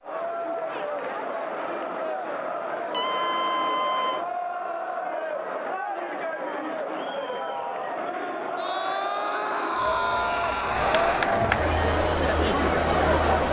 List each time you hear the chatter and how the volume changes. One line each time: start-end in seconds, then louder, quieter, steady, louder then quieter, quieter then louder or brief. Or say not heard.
0.0-13.4 louder.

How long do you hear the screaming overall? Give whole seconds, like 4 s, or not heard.
4 s.